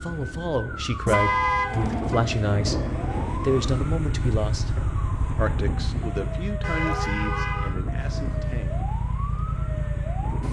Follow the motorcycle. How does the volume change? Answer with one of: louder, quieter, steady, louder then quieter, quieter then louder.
steady.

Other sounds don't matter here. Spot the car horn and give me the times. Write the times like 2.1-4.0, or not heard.
1.1-2.2, 6.6-7.8.